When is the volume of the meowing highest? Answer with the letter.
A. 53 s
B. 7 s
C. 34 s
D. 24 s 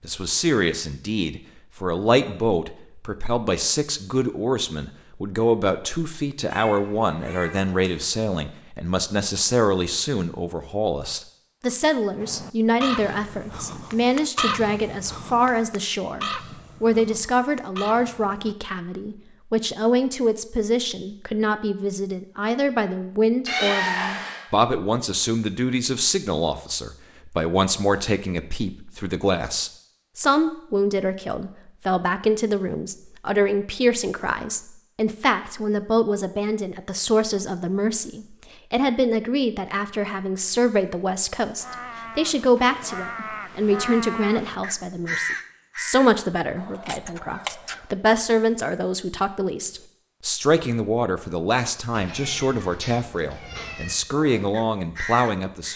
D.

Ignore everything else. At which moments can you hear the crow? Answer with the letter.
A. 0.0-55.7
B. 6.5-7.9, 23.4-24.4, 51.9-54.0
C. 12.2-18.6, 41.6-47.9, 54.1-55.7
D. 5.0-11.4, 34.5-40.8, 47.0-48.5
C.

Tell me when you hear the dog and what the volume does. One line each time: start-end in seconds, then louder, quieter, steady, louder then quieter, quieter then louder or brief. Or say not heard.
not heard.